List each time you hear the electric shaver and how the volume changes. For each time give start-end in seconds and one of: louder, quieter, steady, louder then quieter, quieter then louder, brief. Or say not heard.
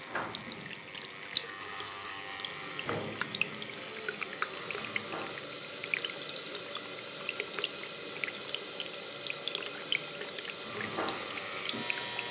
0.0-5.5 louder then quieter
10.6-12.2 brief.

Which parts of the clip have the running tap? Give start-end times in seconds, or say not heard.
0.0-12.2.